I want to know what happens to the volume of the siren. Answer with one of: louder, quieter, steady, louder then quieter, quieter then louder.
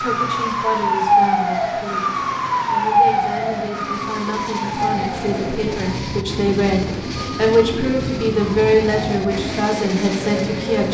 quieter.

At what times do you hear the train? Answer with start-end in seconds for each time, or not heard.
0.0-10.8.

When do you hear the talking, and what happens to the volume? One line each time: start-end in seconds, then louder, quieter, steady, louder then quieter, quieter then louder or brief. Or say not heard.
0.0-10.8 louder.